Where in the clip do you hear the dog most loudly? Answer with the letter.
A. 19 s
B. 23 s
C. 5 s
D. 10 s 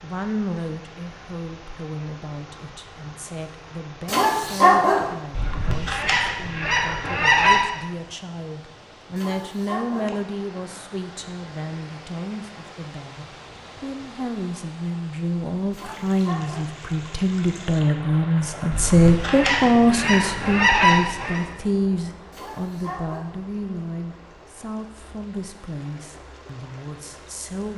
C.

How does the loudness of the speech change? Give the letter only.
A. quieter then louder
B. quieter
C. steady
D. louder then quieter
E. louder
D.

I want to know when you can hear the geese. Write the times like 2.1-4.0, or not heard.
5.3-7.6, 18.7-21.4.